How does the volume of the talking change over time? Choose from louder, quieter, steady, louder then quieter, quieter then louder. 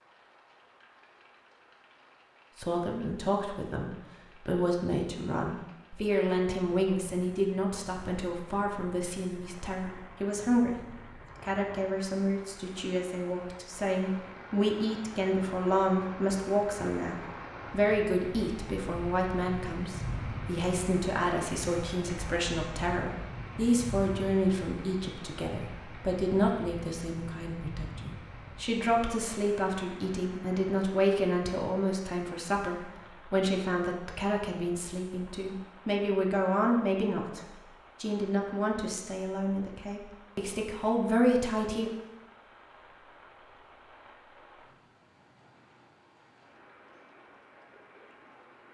steady.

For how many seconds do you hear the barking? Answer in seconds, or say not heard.
not heard.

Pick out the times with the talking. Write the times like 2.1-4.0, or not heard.
2.5-41.9.